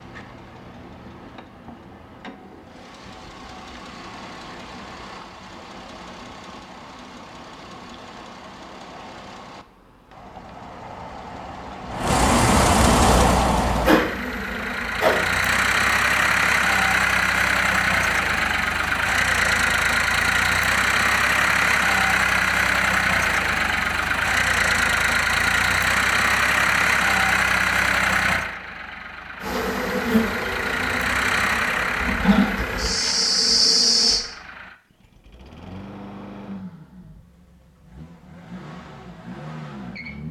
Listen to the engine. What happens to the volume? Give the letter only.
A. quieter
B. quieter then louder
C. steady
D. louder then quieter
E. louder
D.